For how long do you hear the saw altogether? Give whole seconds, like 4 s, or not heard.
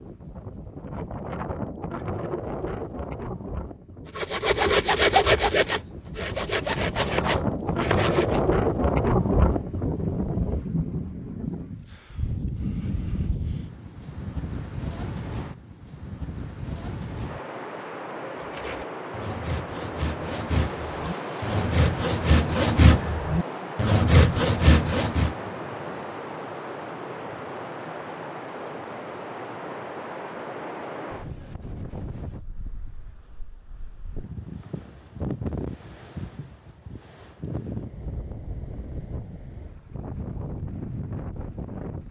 11 s.